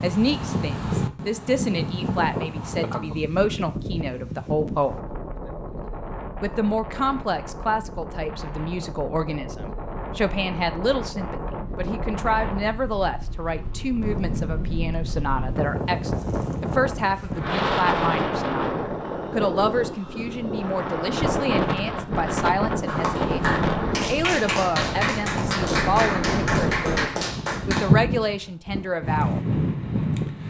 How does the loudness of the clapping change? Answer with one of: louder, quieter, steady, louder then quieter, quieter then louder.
steady.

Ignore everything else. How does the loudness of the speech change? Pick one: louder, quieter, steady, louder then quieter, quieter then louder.
steady.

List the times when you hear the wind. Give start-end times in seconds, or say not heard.
0.0-30.4.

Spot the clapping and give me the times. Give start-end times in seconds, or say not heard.
22.9-27.9.